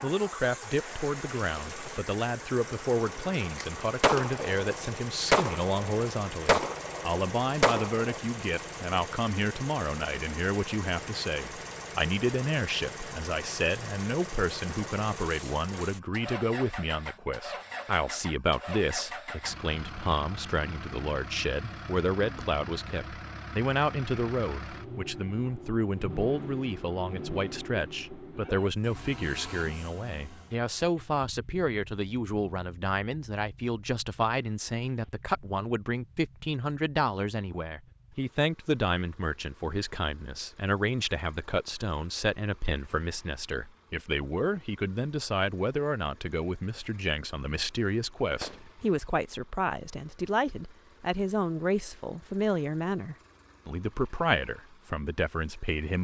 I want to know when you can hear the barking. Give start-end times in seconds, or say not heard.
not heard.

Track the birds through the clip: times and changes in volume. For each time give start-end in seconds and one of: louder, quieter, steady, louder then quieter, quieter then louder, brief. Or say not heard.
not heard.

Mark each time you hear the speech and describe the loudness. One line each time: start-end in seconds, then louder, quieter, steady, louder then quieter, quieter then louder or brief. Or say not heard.
0.0-56.0 steady.